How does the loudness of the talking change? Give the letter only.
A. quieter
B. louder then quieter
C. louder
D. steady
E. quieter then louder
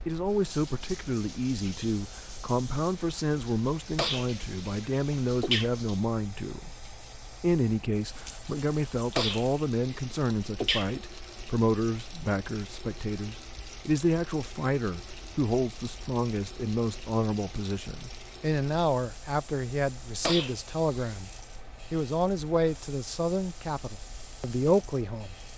D.